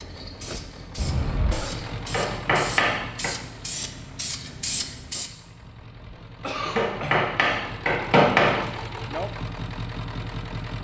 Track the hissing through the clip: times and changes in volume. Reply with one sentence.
You can hear the hissing from 0.0 to 5.3 s, getting louder.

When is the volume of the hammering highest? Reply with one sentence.
The loudest moment of the hammering is at 8 seconds.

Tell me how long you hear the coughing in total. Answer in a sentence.
You can hear the coughing for 2 seconds altogether.